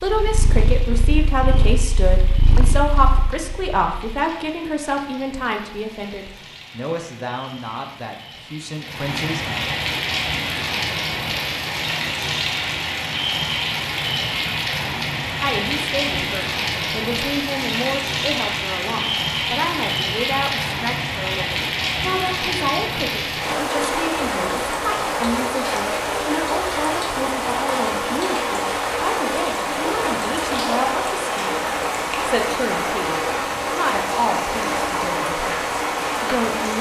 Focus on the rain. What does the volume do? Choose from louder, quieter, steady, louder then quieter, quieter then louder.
louder.